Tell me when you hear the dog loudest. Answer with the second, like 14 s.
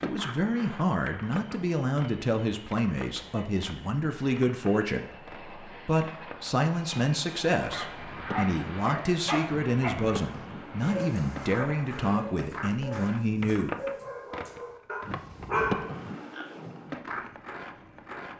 16 s.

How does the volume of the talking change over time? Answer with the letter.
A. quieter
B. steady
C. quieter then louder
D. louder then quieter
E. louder
B.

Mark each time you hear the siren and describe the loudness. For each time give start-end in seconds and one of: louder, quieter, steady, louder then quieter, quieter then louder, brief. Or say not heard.
not heard.